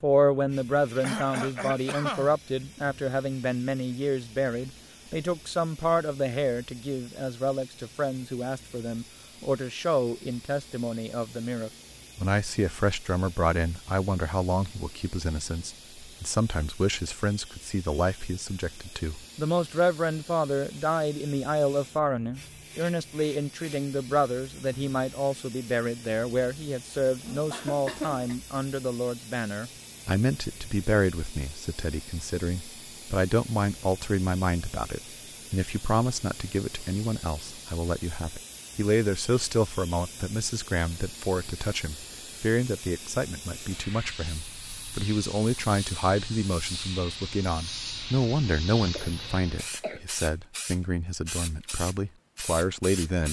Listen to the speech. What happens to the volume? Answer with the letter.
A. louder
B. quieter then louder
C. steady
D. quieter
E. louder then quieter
C.